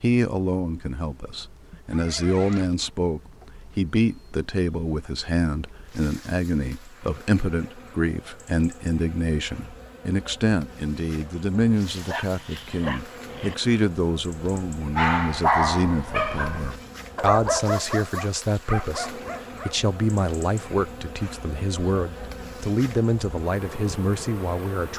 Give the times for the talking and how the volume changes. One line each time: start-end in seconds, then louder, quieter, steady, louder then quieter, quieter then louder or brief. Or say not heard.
0.0-24.9 steady.